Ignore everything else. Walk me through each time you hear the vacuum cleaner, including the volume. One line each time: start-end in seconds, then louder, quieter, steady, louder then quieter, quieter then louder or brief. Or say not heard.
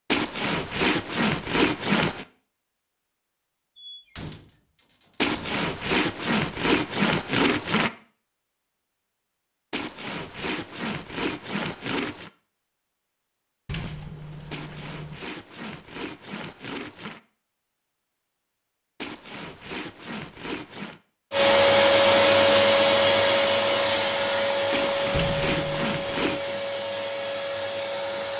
21.3-28.3 quieter.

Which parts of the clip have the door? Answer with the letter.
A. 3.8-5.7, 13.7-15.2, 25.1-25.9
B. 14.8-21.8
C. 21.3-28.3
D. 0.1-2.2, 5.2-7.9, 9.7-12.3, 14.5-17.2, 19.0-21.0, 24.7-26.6
A.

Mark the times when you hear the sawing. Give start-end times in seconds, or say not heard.
0.1-2.2, 5.2-7.9, 9.7-12.3, 14.5-17.2, 19.0-21.0, 24.7-26.6.